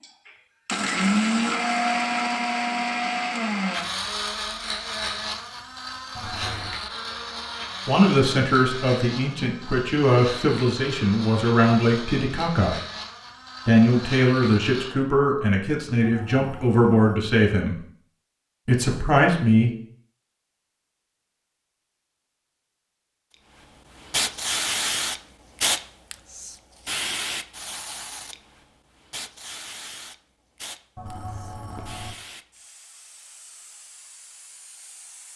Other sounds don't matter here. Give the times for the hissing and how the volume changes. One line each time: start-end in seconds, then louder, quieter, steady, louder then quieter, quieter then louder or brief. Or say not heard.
23.9-35.3 quieter.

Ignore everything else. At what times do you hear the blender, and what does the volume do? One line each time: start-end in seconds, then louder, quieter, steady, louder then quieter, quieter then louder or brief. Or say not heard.
0.0-14.9 quieter.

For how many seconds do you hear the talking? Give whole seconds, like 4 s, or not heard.
10 s.